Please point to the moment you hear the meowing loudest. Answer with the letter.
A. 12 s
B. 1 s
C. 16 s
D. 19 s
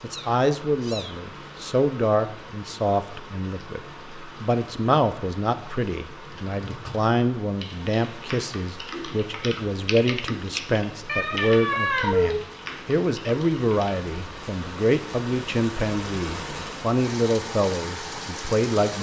A.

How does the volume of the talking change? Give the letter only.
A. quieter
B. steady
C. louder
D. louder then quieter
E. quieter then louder
B.